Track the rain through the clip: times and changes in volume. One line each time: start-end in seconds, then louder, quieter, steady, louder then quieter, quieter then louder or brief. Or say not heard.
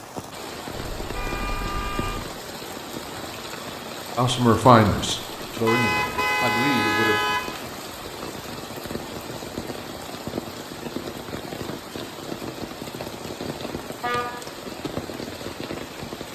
0.0-16.3 steady.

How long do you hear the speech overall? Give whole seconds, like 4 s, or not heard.
3 s.